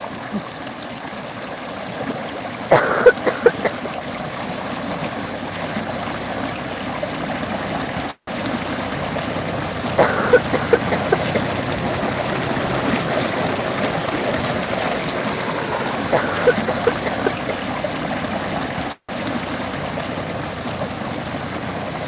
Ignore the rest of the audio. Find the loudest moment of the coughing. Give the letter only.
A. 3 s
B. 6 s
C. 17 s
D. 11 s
A.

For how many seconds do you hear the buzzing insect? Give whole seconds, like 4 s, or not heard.
not heard.